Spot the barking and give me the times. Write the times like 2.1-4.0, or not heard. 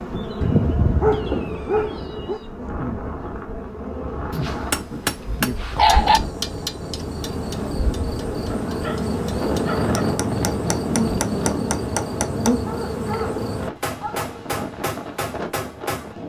0.4-2.4, 4.3-6.2, 8.5-10.1, 12.7-14.6.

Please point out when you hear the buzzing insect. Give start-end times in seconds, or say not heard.
0.0-13.7.